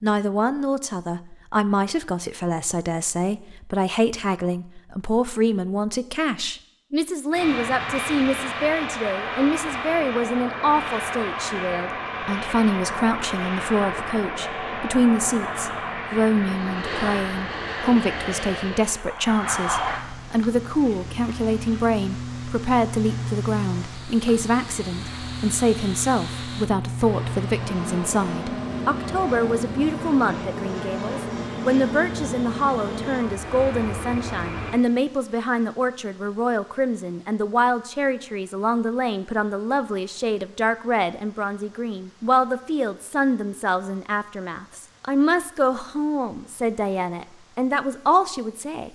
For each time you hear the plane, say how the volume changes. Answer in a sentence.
The plane can be heard from 7.3 to 34.8 s, at a steady volume.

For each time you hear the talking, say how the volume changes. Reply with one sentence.
You can hear the talking from 0.0 to 48.9 s, at a steady volume.